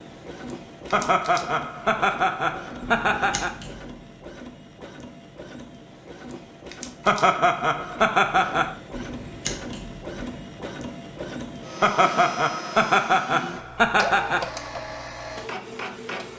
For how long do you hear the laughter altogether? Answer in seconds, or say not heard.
7 s.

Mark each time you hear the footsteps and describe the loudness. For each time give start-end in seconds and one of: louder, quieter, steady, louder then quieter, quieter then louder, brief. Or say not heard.
not heard.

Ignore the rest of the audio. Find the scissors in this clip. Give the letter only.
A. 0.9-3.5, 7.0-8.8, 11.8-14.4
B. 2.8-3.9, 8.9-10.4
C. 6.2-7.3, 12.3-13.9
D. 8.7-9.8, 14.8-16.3
B.